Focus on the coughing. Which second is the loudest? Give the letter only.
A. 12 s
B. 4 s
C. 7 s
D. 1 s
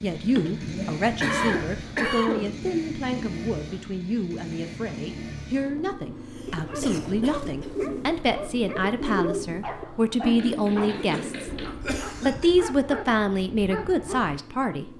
D.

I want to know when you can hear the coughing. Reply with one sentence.
The coughing can be heard from 0.2 to 2.8 s, from 5.8 to 7.8 s and from 10.9 to 12.5 s.